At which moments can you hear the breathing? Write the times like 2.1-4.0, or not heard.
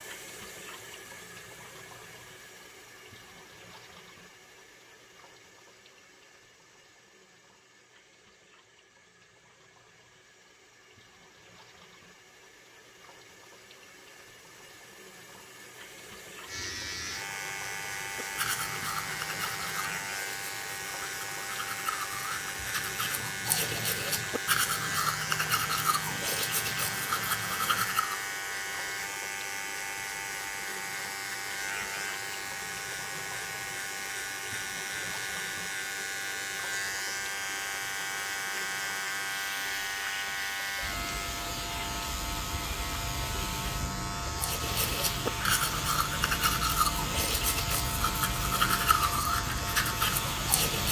not heard.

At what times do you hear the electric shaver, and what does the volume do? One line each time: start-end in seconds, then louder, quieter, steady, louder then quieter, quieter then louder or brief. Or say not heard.
16.4-50.8 steady.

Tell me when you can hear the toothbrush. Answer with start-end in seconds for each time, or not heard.
18.1-28.3, 44.4-50.8.